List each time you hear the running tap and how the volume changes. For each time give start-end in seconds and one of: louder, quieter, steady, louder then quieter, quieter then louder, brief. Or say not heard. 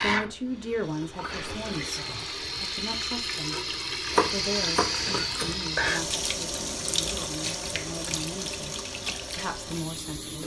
0.0-10.4 louder then quieter.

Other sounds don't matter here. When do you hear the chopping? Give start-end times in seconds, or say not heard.
4.1-5.5.